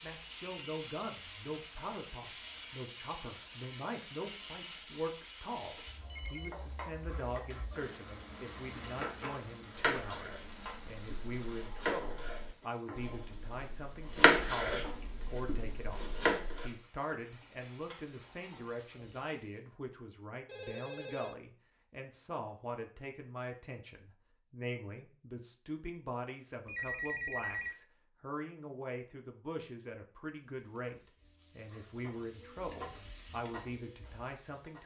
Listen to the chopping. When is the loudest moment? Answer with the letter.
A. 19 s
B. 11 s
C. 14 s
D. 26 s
C.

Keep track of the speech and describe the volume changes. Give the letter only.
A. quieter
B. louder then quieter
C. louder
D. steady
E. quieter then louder
D.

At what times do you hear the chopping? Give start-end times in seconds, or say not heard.
9.8-16.7.